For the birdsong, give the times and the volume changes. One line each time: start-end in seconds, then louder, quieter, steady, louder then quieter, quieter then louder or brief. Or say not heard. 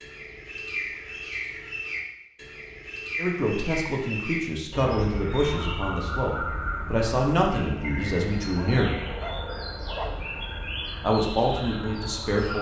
0.0-12.5 steady.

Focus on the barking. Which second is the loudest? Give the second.
10 s.